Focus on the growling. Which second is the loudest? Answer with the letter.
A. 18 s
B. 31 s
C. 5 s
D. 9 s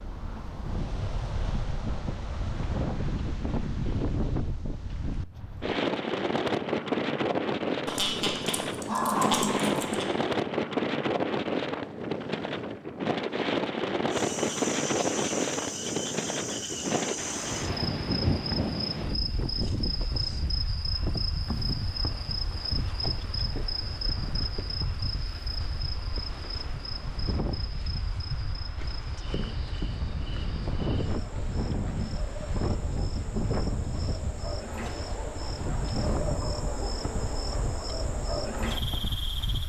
D.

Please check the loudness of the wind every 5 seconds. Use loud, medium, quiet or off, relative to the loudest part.
medium, loud, loud, loud, medium, medium, medium, medium.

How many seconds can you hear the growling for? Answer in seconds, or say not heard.
2 s.